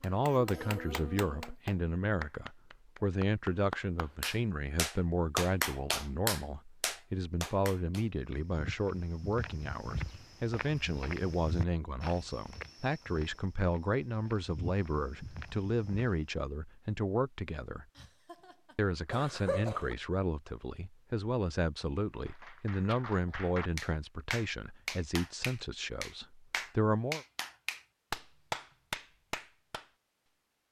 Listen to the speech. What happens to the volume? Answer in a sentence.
The volume of the speech stays about the same.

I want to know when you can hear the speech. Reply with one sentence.
You can hear the speech from 0.0 to 17.9 s and from 18.8 to 27.2 s.